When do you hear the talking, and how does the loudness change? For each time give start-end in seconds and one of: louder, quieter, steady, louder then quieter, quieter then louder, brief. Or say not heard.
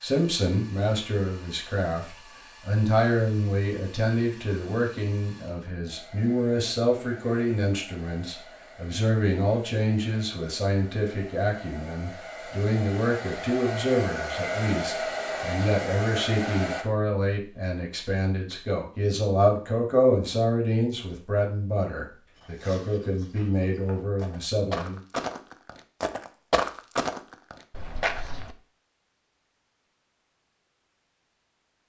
0.0-25.0 steady.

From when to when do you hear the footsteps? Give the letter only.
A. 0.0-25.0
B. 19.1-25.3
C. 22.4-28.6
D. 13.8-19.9
C.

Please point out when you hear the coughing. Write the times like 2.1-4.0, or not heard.
not heard.